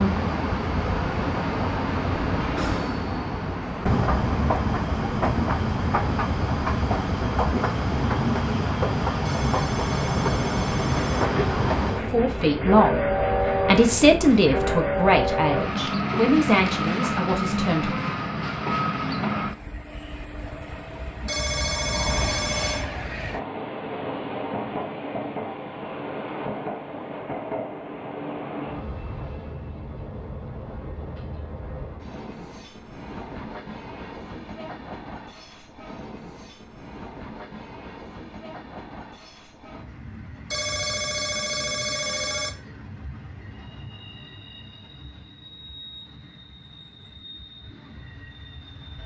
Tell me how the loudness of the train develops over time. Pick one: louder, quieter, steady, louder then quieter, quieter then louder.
quieter.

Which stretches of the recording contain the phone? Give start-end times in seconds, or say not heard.
9.2-11.2, 21.2-22.9, 40.5-42.5.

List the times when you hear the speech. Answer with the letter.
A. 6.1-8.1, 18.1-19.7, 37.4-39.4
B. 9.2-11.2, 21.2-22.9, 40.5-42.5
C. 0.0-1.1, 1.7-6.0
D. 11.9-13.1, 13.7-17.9
D.